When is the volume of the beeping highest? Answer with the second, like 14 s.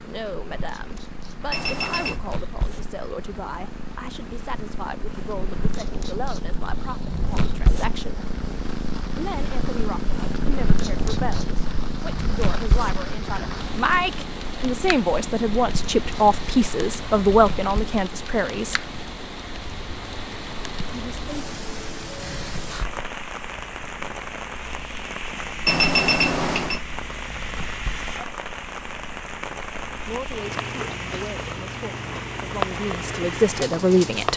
26 s.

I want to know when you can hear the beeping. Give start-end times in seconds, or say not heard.
1.5-2.2, 25.6-26.8.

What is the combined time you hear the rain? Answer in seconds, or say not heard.
34 s.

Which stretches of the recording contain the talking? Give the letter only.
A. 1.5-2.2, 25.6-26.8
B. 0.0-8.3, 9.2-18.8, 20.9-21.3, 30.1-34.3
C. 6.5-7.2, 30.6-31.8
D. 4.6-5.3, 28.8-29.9
B.